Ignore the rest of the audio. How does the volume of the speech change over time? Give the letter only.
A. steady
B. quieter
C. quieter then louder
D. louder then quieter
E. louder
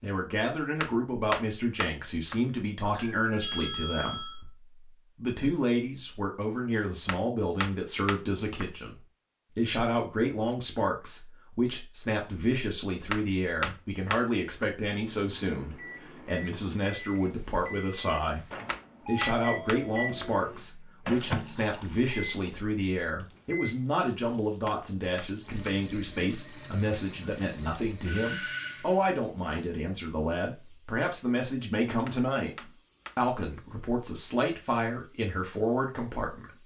A.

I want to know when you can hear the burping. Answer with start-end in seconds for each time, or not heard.
not heard.